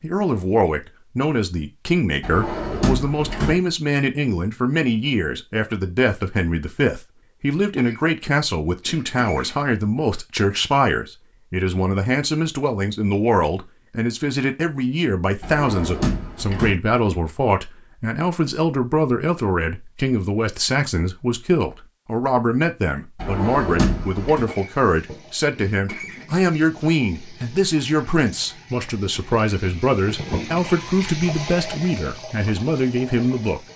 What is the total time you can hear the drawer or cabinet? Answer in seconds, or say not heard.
4 s.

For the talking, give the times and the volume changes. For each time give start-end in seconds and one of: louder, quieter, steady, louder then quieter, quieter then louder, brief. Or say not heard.
0.0-33.6 steady.